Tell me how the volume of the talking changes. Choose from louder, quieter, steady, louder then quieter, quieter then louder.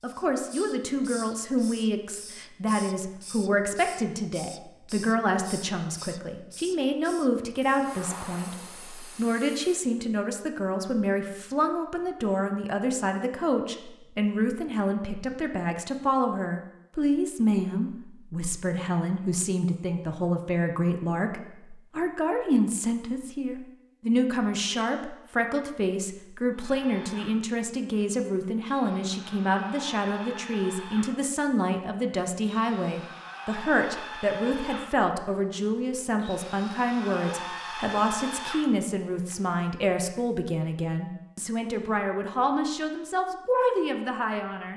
steady.